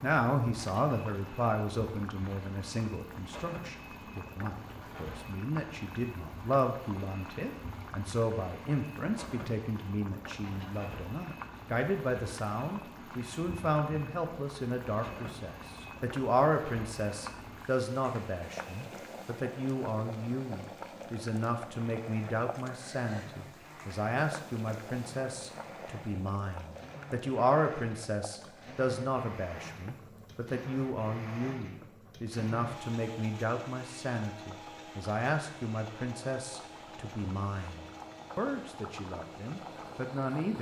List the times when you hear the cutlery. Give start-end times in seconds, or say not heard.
not heard.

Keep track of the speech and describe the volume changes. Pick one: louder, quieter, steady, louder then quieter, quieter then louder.
steady.